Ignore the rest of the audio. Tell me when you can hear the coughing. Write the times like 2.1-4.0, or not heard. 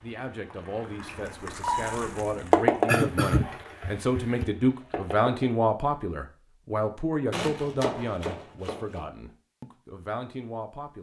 2.9-4.5.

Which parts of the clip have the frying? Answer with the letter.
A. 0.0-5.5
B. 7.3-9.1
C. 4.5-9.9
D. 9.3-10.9
A.